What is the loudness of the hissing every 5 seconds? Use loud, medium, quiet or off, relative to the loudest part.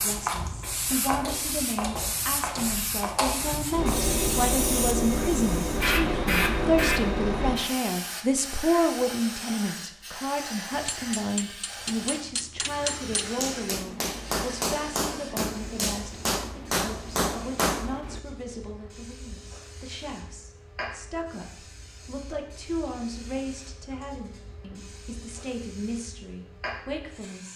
loud, loud, medium, quiet, quiet, quiet.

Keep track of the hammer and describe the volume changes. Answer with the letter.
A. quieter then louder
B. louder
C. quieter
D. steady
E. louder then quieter
B.